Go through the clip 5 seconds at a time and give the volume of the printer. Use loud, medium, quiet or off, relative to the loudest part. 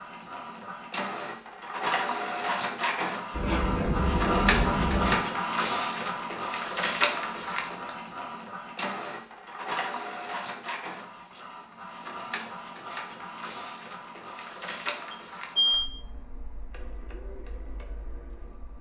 loud, loud, medium, quiet.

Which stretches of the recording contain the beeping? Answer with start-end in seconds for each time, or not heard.
3.4-5.2, 15.1-15.9.